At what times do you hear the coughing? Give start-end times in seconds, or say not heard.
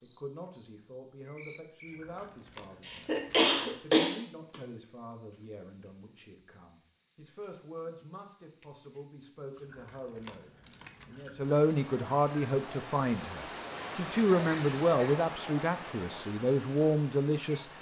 2.9-4.5.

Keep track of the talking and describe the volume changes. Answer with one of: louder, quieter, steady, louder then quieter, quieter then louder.
louder.